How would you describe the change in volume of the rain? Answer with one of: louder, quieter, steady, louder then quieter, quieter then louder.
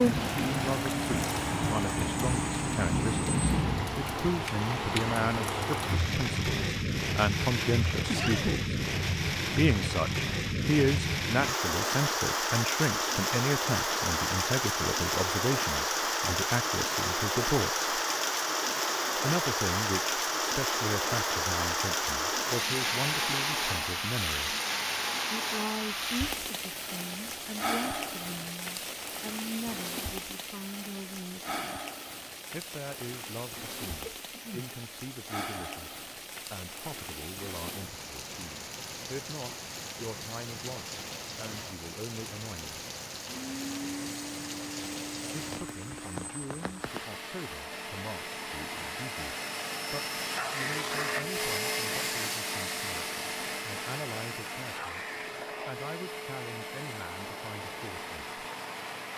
quieter.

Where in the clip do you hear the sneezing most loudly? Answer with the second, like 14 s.
8 s.